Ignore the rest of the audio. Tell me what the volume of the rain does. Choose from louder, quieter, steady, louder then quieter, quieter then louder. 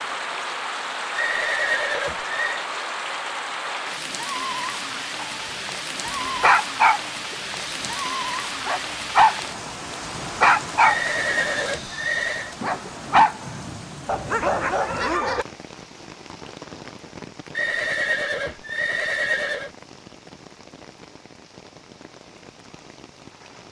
quieter.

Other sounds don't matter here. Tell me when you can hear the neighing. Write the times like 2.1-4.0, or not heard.
1.1-2.6, 10.8-12.6, 17.6-19.7.